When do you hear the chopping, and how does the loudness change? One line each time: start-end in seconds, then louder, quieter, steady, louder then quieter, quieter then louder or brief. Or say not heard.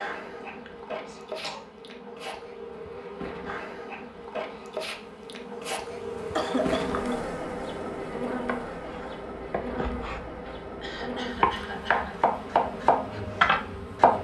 8.4-14.1 louder.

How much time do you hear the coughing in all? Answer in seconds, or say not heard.
4 s.